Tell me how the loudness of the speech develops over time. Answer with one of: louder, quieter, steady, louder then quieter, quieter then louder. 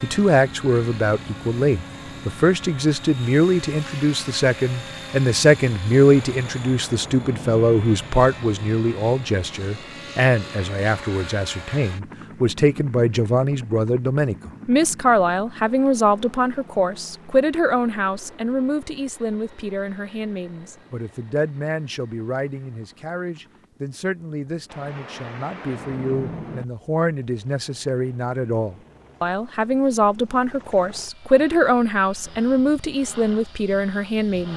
quieter then louder.